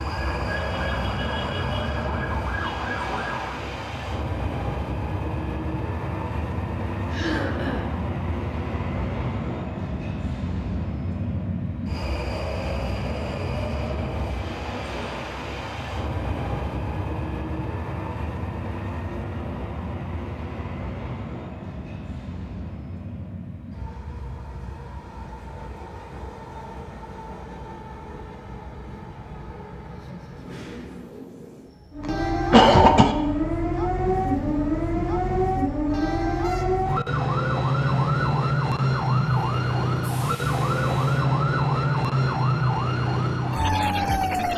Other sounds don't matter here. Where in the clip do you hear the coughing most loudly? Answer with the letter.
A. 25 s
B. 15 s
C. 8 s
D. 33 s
D.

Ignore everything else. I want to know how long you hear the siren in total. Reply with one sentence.
The siren can be heard for 16 seconds in total.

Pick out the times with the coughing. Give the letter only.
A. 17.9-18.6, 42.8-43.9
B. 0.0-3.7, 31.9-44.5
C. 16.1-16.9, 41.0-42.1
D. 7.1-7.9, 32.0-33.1
D.